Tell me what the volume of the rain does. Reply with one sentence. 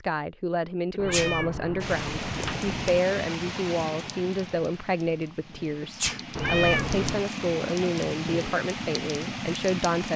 The volume of the rain goes down, then up.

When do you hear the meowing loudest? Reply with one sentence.
The loudest moment of the meowing is at 7 seconds.